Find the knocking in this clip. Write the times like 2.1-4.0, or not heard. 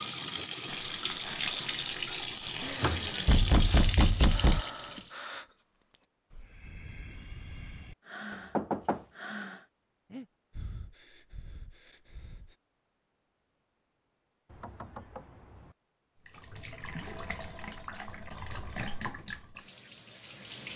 3.2-5.0, 8.6-9.0, 14.5-15.8.